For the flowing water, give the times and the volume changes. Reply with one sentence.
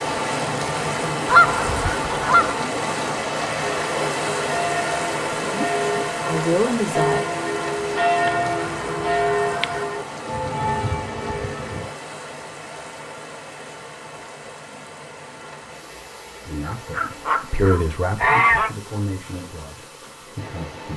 The flowing water can be heard from 0.0 to 20.9 s, getting quieter.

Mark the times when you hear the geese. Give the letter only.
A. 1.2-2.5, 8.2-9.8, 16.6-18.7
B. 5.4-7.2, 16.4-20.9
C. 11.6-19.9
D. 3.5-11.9
A.